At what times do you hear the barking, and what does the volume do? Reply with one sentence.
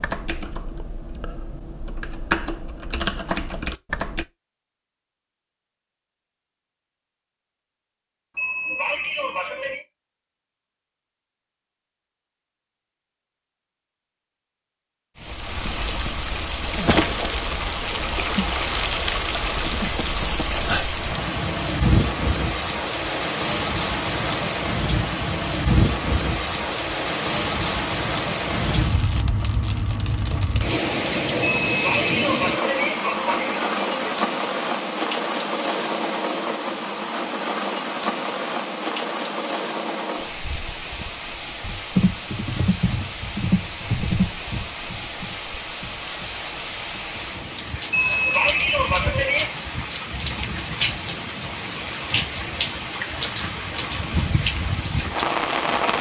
You can't hear the barking here.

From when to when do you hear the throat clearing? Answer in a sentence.
You can hear the throat clearing from 8.3 to 9.8 s, from 31.4 to 34.1 s and from 47.9 to 49.5 s.